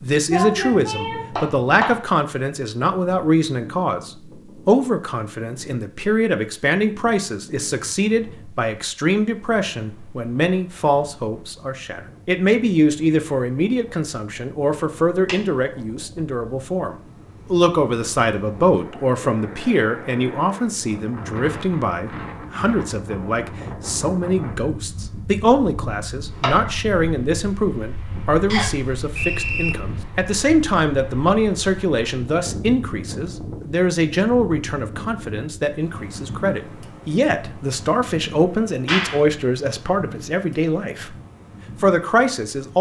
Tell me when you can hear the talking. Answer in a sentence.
You can hear the talking from 0.0 to 41.1 s and from 41.8 to 42.7 s.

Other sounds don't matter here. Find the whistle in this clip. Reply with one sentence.
You can hear the whistle from 28.5 to 29.8 s.